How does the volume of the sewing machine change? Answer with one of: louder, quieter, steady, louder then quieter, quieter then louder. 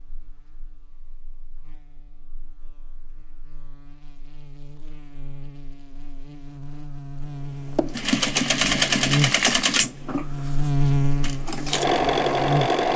quieter then louder.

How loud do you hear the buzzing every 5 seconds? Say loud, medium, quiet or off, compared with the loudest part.
quiet, medium, loud.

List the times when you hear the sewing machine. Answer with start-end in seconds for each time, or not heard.
7.8-12.9.